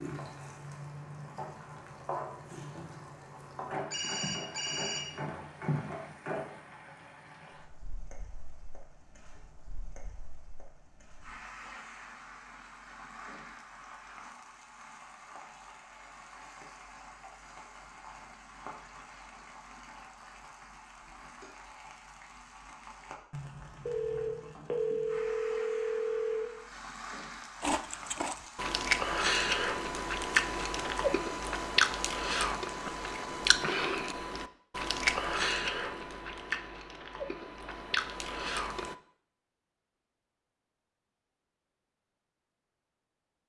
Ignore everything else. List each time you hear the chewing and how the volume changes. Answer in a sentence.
You can hear the chewing from 27.6 to 39.0 s, getting quieter.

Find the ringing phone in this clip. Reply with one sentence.
The ringing phone can be heard from 3.9 to 6.0 s and from 23.9 to 26.4 s.